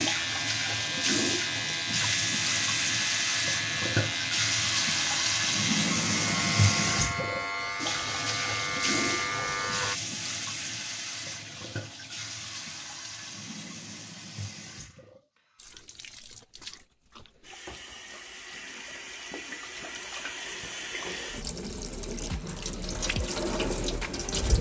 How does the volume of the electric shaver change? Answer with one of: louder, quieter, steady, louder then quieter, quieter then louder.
steady.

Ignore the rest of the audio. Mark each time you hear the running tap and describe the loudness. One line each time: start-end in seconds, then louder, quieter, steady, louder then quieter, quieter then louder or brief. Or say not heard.
0.0-24.5 quieter then louder.